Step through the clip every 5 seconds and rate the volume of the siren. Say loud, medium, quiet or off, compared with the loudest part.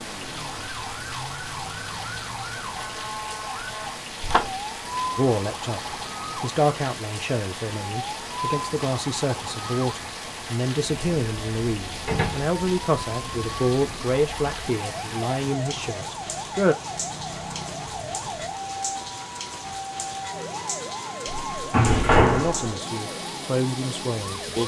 loud, loud, medium, loud, loud.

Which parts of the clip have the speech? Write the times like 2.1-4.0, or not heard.
5.2-16.8, 22.0-24.6.